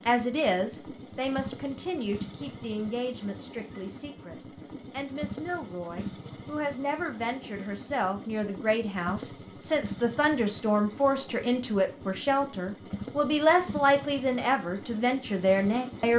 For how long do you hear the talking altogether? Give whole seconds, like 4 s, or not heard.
16 s.